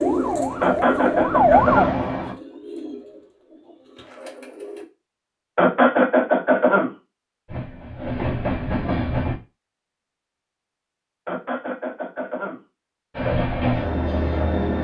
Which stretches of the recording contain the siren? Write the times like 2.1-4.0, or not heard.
0.0-1.9.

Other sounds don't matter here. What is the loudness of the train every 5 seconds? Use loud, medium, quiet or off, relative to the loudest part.
medium, loud, loud.